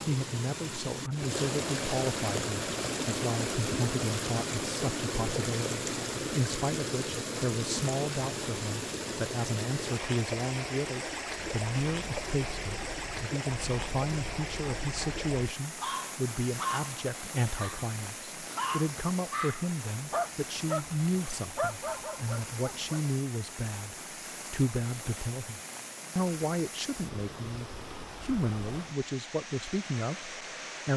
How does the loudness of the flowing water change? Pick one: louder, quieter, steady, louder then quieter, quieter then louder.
quieter.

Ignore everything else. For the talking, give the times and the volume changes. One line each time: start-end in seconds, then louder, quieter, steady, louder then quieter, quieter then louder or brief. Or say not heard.
0.1-30.9 steady.